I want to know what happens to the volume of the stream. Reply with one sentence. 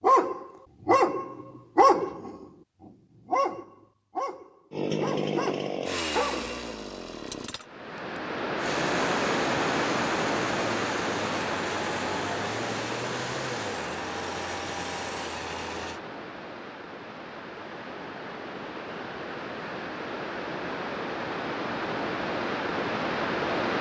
The loudness of the stream goes down, then up.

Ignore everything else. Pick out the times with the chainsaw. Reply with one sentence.
The chainsaw can be heard from 4.7 to 16.0 s.